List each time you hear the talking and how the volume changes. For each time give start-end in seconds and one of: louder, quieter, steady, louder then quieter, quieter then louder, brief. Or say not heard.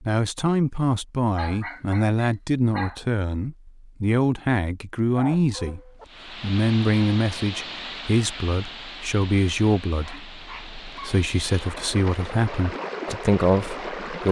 0.0-14.2 steady.